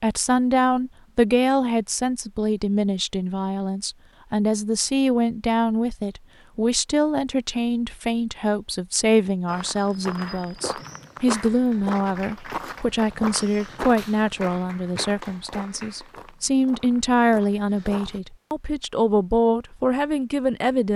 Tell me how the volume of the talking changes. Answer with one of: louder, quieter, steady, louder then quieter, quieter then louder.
steady.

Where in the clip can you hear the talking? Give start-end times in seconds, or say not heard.
0.0-20.9.